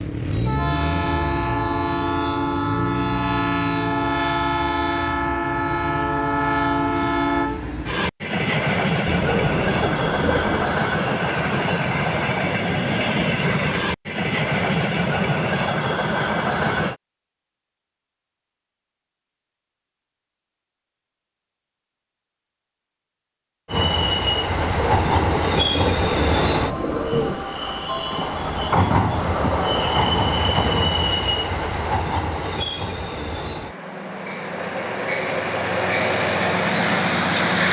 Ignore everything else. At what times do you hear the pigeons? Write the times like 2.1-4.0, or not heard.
9.1-10.8, 24.6-27.5.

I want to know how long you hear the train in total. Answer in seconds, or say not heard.
31 s.